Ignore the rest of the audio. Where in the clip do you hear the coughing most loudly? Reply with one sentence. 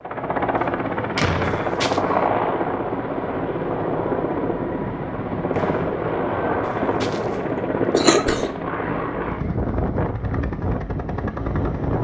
The loudest moment of the coughing is at 8 seconds.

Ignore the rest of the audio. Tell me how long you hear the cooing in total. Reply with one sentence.
You can't hear the cooing here.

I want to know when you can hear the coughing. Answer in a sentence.
The coughing can be heard from 1.4 to 2.0 s and from 6.7 to 8.5 s.